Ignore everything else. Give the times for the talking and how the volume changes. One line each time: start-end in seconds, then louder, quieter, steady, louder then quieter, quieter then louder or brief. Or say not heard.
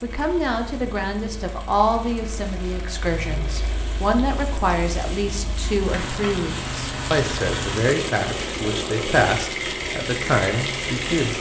0.0-11.3 steady.